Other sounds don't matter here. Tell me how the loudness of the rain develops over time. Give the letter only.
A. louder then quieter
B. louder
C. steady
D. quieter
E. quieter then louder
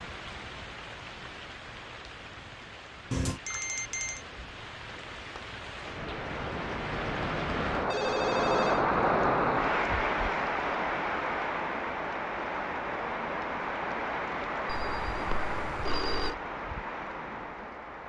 A.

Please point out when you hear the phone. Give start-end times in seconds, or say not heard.
3.1-4.2, 7.9-8.8, 14.7-16.4.